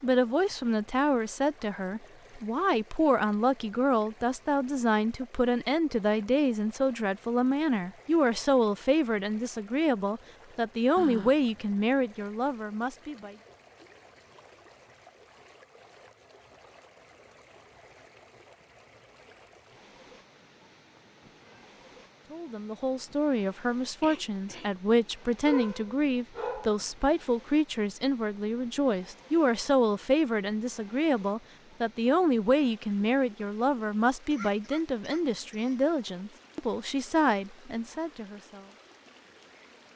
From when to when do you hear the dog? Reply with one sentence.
You can hear the dog from 25.4 to 26.8 s.